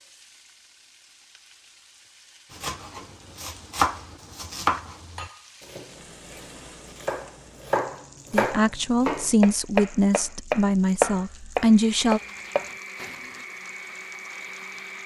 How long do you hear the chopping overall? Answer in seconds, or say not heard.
11 s.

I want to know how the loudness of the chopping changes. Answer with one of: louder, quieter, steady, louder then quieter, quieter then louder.
quieter then louder.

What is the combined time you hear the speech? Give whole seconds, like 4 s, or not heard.
4 s.